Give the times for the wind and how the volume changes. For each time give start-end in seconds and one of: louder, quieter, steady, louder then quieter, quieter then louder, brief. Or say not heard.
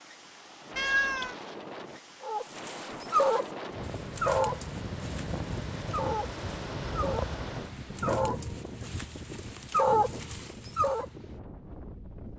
0.0-12.3 louder then quieter.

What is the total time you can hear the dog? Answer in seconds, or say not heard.
9 s.